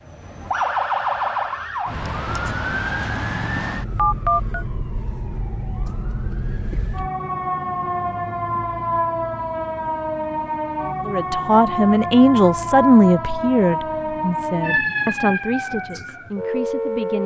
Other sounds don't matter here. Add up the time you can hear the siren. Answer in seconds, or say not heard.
17 s.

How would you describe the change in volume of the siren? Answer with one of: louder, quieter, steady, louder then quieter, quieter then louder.
quieter then louder.